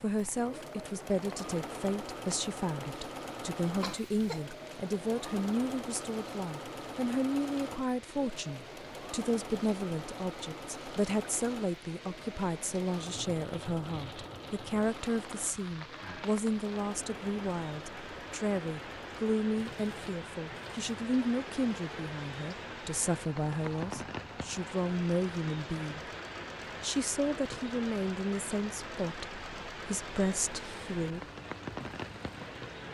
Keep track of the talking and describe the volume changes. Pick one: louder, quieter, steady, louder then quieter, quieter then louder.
steady.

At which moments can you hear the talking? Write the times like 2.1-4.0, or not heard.
0.0-26.1, 26.8-31.2.